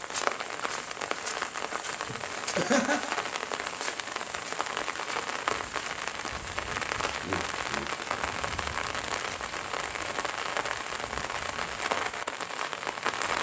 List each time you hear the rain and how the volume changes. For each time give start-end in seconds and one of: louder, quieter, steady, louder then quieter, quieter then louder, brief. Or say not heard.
0.0-13.3 steady.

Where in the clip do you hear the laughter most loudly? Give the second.
3 s.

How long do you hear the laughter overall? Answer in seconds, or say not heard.
2 s.